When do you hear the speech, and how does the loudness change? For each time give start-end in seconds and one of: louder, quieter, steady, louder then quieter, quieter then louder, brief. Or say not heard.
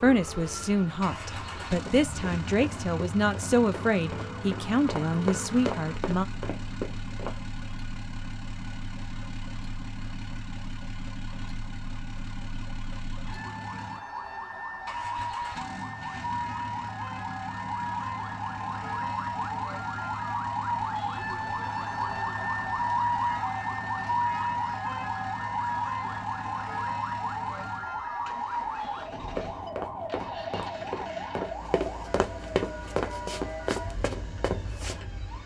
0.0-6.2 steady.